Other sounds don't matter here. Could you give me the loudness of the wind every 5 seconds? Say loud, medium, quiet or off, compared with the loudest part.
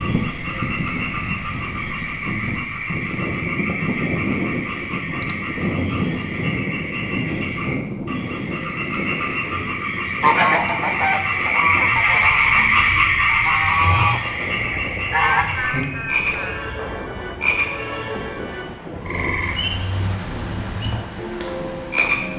loud, loud, medium, medium, medium.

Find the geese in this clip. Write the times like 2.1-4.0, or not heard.
10.2-15.4.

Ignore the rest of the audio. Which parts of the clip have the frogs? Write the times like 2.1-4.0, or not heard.
0.0-22.3.